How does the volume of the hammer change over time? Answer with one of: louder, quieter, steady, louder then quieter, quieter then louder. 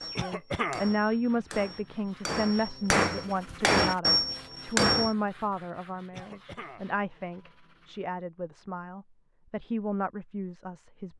louder.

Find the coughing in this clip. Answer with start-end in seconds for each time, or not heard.
0.1-0.9, 6.1-6.9.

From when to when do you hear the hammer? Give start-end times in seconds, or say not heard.
0.0-5.2.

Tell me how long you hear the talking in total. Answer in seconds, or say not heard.
11 s.